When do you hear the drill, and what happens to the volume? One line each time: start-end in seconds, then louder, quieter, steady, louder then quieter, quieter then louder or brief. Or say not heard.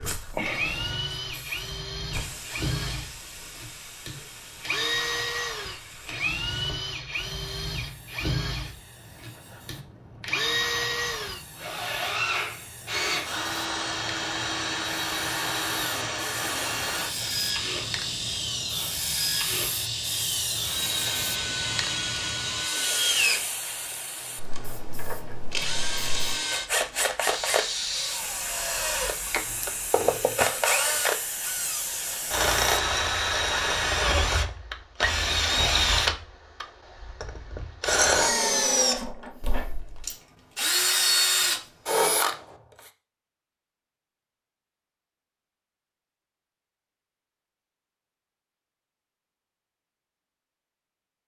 0.0-42.4 louder.